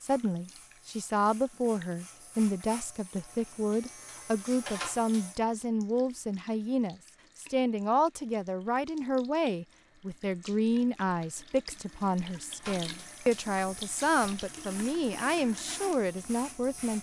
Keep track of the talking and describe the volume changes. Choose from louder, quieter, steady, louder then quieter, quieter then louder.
steady.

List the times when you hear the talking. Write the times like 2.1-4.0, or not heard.
0.0-16.9.